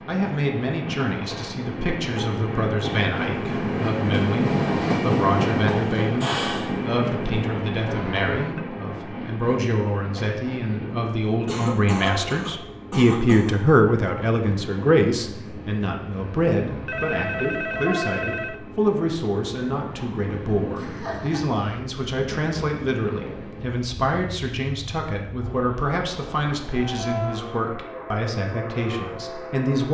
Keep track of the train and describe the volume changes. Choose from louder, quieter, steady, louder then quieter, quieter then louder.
quieter.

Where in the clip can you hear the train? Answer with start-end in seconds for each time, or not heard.
0.0-29.8.